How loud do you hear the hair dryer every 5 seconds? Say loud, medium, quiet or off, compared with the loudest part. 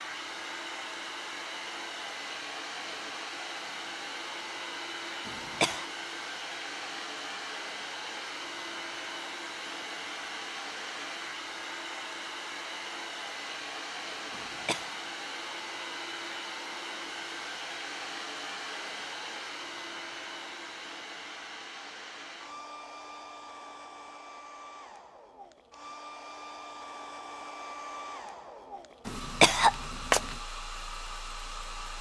loud, loud, loud, loud, medium, medium, loud.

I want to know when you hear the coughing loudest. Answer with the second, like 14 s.
30 s.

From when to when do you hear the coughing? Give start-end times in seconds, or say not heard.
5.2-5.8, 14.3-14.9, 29.1-30.4.